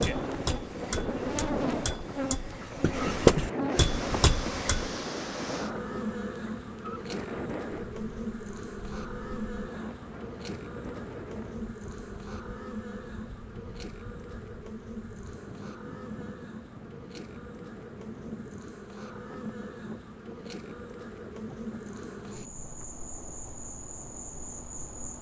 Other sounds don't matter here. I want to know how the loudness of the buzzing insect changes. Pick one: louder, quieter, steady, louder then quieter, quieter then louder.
quieter.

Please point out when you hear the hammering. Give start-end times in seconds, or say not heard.
0.0-4.9.